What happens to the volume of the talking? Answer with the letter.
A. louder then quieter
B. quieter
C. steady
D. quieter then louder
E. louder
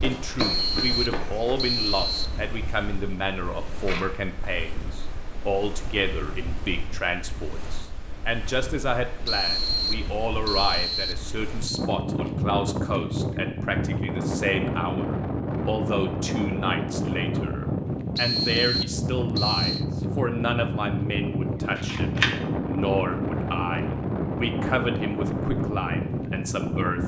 C.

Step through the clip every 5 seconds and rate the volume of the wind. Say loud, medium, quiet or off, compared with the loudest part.
quiet, quiet, loud, loud, loud, loud.